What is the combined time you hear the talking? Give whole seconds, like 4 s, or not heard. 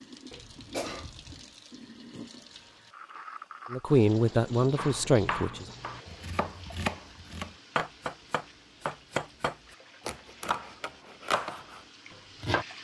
2 s.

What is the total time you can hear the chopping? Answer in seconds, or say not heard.
8 s.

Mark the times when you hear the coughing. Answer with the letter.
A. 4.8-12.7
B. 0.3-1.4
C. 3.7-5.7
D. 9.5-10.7
B.